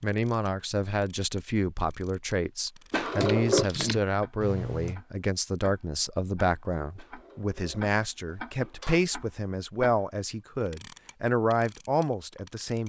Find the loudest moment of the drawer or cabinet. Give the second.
3 s.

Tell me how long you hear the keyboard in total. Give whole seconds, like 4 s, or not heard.
2 s.